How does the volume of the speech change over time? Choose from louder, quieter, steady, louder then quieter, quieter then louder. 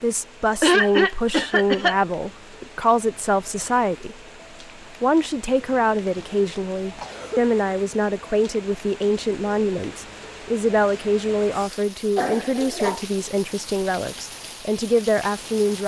steady.